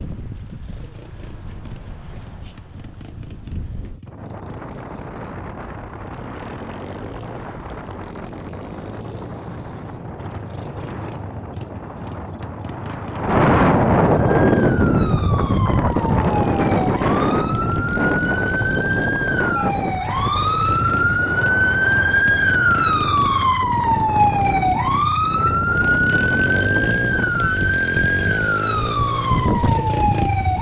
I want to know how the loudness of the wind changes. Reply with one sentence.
The loudness of the wind goes up, then down.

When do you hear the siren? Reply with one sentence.
The siren can be heard from 14.1 to 30.5 s.